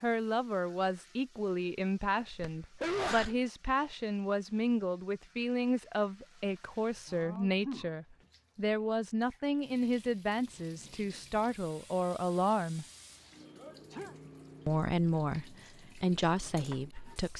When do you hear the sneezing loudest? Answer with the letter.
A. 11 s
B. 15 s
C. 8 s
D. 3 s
D.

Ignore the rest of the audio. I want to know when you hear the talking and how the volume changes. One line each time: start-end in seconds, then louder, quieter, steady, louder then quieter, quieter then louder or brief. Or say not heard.
0.0-12.8 steady
14.7-17.3 brief.